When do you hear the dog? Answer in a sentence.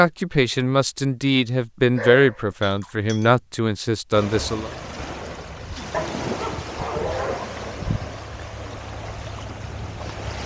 The dog can be heard from 1.9 to 3.3 s and from 5.9 to 7.5 s.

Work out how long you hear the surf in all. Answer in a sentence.
You can hear the surf for 6 seconds altogether.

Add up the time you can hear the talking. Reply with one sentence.
The talking can be heard for 5 seconds in total.